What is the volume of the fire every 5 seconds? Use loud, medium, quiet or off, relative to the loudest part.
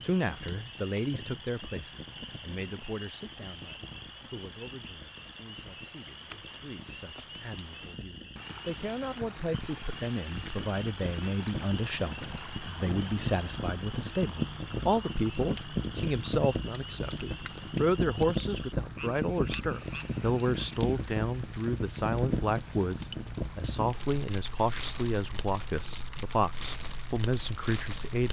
quiet, quiet, loud, loud, loud, medium.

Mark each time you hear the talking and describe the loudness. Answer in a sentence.
The talking can be heard from 0.0 to 28.2 s, getting louder.